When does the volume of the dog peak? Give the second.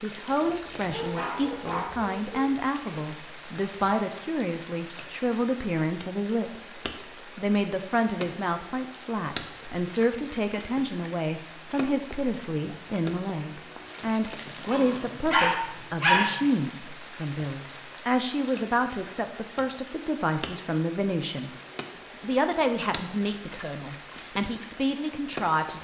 16 s.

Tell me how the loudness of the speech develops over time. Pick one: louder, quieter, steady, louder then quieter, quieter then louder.
steady.